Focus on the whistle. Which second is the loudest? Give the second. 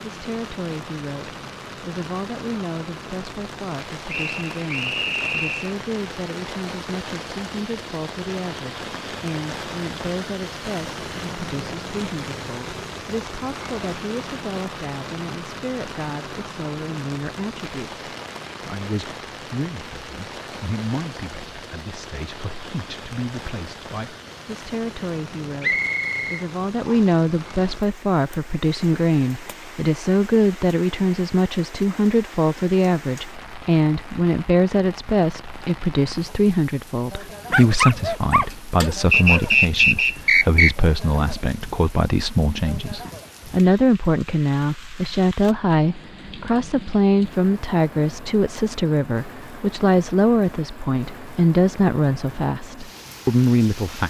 40 s.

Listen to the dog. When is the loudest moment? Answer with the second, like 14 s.
38 s.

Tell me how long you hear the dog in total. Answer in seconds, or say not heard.
2 s.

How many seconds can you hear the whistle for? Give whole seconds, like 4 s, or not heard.
5 s.